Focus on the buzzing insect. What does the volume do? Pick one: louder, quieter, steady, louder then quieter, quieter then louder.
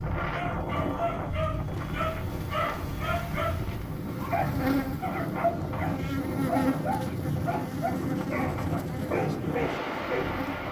louder.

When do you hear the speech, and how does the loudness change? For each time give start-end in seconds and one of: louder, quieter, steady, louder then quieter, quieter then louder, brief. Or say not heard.
not heard.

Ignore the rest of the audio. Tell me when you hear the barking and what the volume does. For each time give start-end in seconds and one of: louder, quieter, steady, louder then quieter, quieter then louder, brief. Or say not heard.
0.1-10.2 steady.